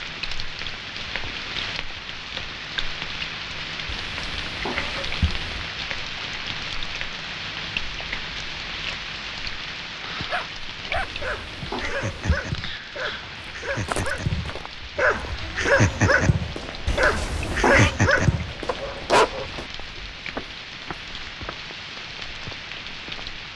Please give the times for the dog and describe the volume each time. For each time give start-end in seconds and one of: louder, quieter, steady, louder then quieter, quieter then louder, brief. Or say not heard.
10.3-19.4 louder.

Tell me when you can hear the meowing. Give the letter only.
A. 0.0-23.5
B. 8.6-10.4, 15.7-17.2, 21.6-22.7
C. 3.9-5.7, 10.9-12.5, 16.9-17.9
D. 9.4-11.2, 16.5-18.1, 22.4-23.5
C.